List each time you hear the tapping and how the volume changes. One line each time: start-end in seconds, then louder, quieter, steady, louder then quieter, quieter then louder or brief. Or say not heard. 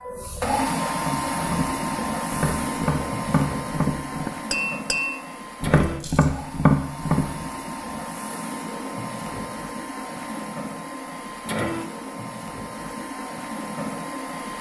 1.0-7.3 louder.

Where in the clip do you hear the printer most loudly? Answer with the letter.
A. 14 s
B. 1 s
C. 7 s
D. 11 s
B.